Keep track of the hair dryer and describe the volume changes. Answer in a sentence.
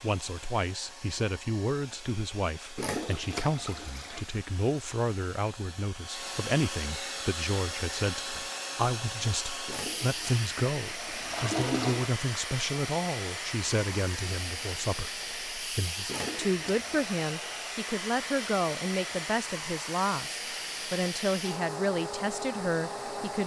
The loudness of the hair dryer goes up.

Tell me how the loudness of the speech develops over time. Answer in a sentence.
The loudness of the speech stays about the same.